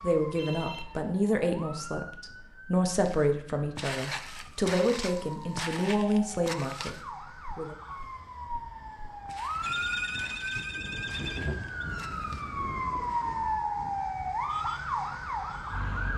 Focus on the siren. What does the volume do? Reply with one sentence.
The volume of the siren goes up.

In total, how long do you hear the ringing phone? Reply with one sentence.
You can hear the ringing phone for 3 seconds altogether.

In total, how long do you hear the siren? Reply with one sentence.
The siren can be heard for 16 seconds in total.